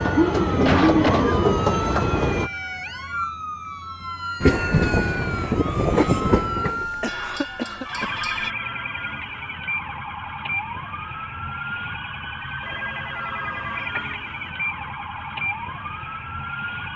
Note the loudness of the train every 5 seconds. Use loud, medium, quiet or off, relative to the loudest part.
loud, medium, off, off.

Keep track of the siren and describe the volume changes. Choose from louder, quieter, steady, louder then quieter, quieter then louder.
steady.